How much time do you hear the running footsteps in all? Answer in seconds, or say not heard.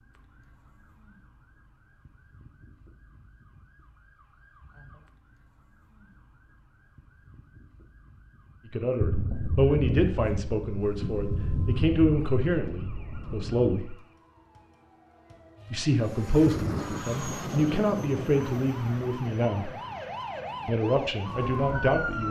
not heard.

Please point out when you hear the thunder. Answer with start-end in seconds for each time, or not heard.
9.0-13.7.